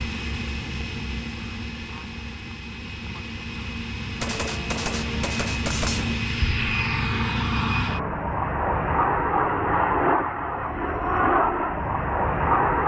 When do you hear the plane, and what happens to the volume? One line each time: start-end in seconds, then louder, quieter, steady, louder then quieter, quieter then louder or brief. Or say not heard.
0.0-12.8 louder.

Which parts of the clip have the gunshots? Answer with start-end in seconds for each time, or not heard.
4.2-6.2.